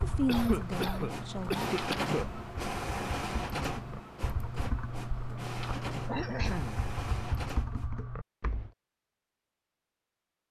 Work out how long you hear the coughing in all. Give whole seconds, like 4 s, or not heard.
3 s.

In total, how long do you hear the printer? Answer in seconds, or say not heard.
8 s.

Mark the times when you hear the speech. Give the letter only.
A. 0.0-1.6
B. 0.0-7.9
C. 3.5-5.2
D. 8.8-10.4
A.